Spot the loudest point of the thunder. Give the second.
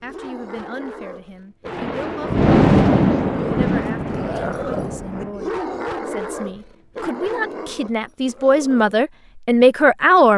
3 s.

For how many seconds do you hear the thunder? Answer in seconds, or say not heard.
4 s.